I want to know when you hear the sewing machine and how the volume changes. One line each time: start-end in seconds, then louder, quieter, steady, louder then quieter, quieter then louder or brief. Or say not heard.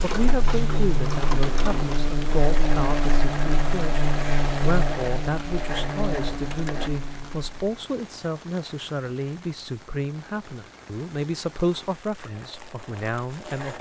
0.0-6.9 steady
12.2-13.7 brief.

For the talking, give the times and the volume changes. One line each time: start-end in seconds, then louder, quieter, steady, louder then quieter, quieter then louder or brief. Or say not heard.
0.0-13.7 steady.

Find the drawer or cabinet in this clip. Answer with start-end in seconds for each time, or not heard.
not heard.